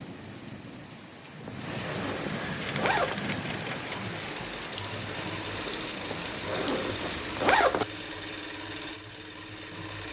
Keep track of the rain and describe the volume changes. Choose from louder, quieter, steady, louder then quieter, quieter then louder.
louder.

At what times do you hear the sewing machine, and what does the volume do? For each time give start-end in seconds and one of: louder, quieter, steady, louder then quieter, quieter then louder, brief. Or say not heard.
2.5-10.0 steady.